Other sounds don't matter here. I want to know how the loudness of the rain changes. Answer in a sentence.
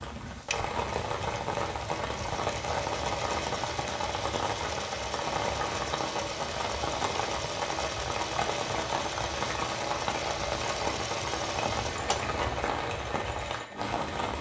The loudness of the rain stays about the same.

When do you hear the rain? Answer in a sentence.
You can hear the rain from 0.0 to 14.3 s.